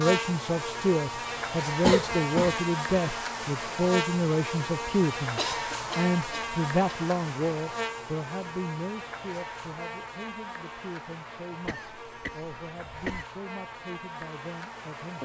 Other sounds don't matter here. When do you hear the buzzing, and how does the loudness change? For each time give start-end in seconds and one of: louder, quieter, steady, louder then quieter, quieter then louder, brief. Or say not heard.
0.0-15.2 quieter.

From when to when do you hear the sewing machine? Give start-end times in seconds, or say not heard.
not heard.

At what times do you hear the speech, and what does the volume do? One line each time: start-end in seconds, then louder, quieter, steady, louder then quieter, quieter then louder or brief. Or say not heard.
0.0-15.2 quieter.